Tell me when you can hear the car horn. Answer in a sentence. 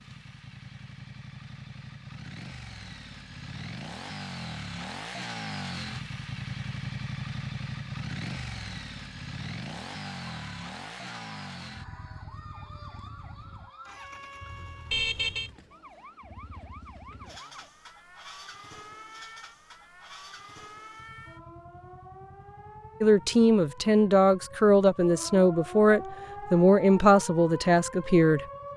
The car horn can be heard from 14.9 to 15.5 s.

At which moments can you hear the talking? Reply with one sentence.
You can hear the talking from 23.0 to 28.4 s.